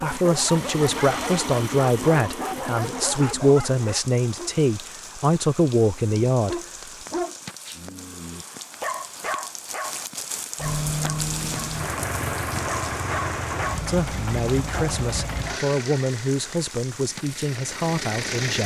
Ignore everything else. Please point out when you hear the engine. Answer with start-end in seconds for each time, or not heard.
0.1-3.2, 10.6-18.6.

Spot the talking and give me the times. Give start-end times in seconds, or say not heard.
0.0-6.6, 13.8-18.6.